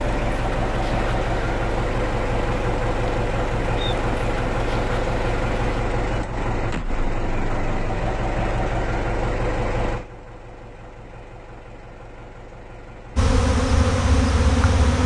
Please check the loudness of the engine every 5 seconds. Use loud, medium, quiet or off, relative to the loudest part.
loud, loud, quiet.